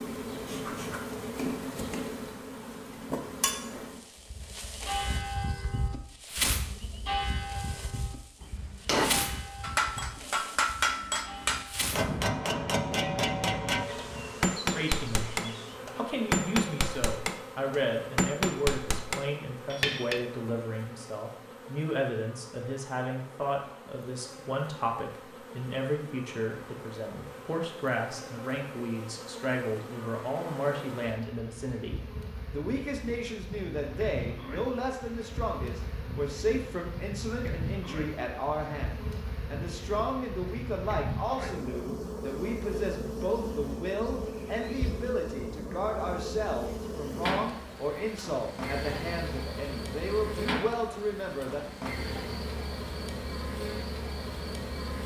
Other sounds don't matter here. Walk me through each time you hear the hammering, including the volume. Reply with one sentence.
The hammering can be heard from 8.8 to 20.2 s, at a steady volume.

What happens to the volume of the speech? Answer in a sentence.
The loudness of the speech stays about the same.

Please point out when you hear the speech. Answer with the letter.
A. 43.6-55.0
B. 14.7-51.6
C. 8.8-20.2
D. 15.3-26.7
B.